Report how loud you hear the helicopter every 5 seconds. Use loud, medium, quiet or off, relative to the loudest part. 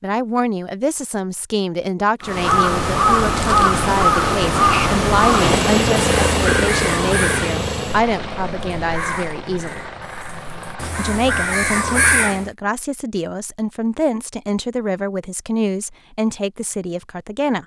off, loud, quiet, off.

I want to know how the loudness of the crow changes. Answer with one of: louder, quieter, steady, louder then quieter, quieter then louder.
quieter then louder.